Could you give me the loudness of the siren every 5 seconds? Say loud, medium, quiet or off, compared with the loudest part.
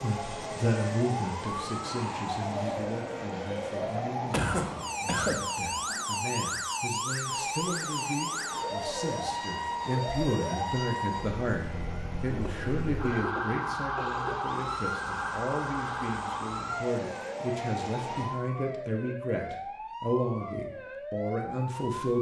loud, loud, loud, loud, medium.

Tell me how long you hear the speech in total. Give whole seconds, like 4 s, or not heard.
22 s.